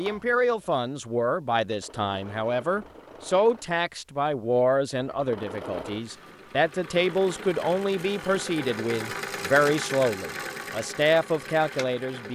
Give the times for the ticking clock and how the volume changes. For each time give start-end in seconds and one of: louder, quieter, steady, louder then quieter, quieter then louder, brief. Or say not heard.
not heard.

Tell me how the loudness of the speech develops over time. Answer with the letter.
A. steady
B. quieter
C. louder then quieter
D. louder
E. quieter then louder
A.